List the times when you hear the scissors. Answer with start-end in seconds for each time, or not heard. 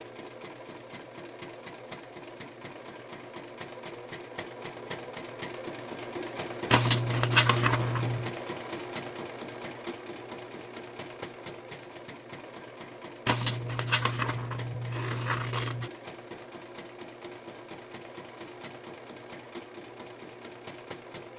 6.7-8.3, 13.2-15.9.